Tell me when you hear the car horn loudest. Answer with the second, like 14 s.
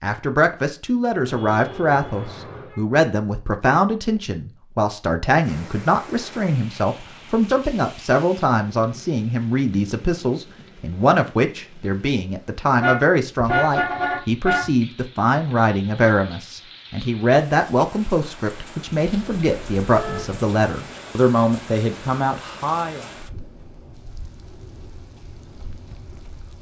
14 s.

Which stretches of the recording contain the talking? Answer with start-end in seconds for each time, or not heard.
0.0-23.1.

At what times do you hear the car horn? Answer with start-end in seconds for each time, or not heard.
1.2-2.8, 12.8-14.7, 19.0-20.4.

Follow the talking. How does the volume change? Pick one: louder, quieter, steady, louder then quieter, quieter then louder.
steady.